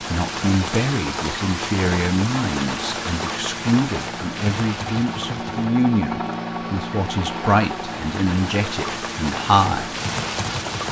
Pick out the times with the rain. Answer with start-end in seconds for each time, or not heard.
0.0-10.8.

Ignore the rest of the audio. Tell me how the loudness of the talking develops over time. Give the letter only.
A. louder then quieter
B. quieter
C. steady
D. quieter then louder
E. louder
C.